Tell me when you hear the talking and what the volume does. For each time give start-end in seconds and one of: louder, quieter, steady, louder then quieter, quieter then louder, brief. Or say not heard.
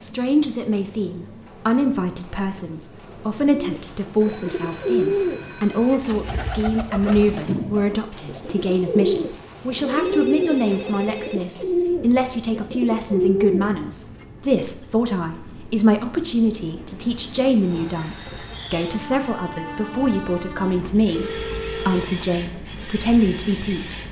0.0-24.0 steady.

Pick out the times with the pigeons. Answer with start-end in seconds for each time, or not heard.
3.5-14.2.